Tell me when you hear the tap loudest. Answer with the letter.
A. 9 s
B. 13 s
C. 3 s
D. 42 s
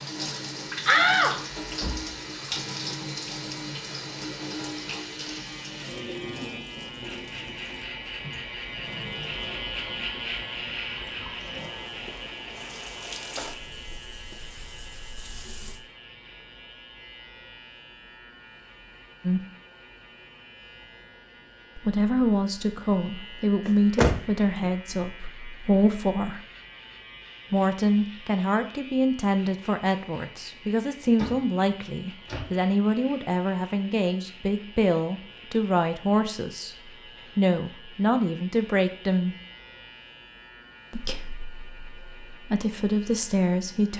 C.